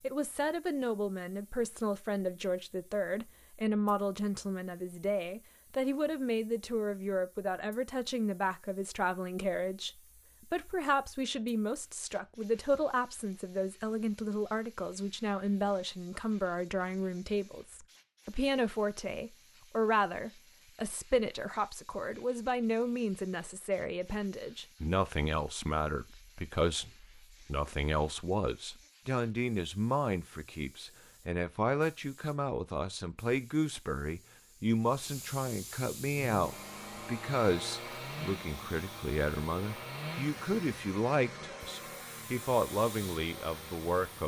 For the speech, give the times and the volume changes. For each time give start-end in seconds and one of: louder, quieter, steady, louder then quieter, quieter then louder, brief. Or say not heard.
0.0-44.2 steady.